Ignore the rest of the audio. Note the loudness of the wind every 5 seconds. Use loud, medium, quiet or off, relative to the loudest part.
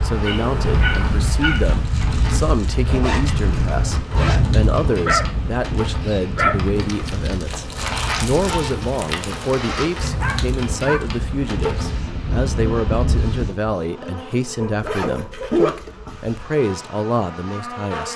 loud, medium, loud, off.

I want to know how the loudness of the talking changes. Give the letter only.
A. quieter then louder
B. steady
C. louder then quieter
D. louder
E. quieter
B.